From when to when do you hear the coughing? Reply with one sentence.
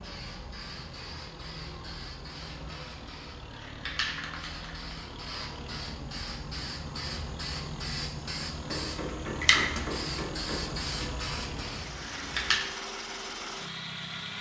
You can't hear the coughing here.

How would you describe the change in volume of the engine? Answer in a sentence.
The loudness of the engine goes up.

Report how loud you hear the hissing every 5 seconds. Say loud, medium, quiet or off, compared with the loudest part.
medium, loud, loud.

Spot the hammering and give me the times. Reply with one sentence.
You can hear the hammering from 8.7 to 10.9 s.